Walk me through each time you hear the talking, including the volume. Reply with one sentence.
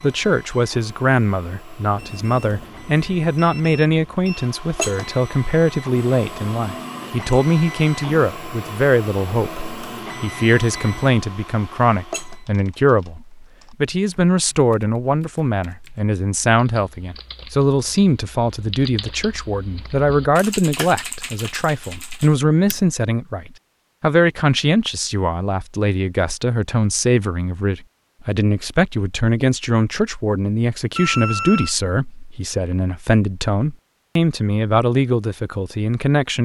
The talking can be heard from 0.0 to 36.3 s, at a steady volume.